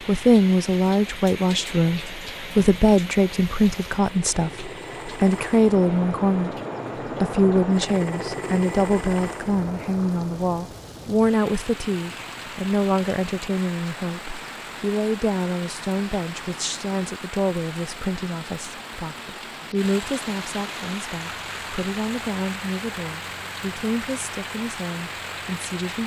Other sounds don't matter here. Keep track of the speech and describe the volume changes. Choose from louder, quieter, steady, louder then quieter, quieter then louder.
quieter.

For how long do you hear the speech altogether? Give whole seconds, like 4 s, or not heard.
25 s.